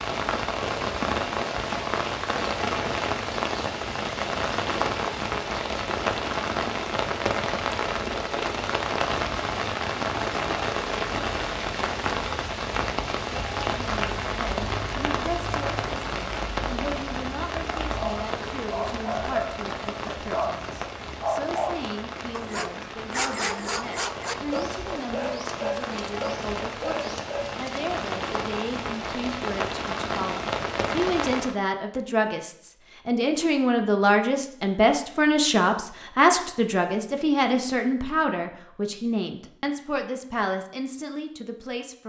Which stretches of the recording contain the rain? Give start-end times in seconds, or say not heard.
0.0-31.6.